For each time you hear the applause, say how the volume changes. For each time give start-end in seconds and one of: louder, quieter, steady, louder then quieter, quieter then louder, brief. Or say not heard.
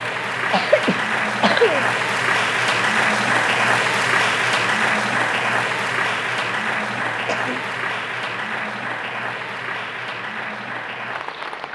0.0-11.6 quieter.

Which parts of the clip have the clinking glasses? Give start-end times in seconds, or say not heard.
not heard.